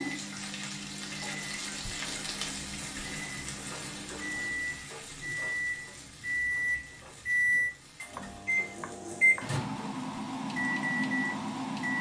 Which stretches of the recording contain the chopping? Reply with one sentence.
The chopping can be heard from 8.2 to 9.6 s.